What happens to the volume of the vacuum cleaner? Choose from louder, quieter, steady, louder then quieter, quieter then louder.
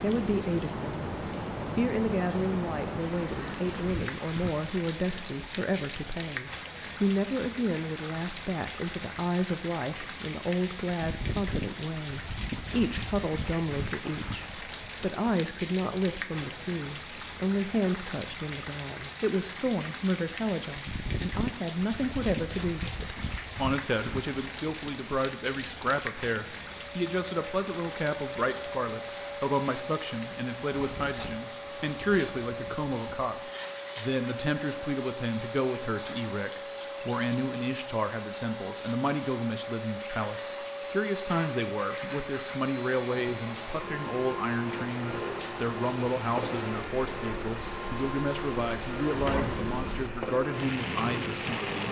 steady.